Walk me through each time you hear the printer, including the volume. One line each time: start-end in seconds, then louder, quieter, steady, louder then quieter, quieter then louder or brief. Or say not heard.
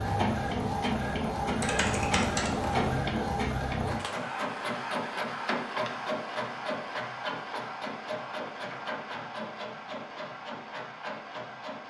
0.0-11.8 quieter.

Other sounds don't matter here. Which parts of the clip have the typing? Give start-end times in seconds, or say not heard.
1.6-3.0.